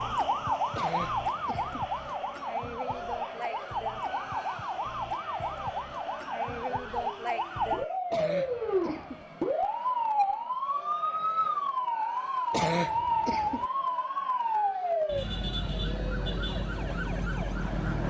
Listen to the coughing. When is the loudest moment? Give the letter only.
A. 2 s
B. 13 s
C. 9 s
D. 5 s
B.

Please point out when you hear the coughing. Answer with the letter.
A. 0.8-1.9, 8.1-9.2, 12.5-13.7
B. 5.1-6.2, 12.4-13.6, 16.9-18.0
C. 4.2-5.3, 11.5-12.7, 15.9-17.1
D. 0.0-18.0
A.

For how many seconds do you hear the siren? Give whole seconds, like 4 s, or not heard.
18 s.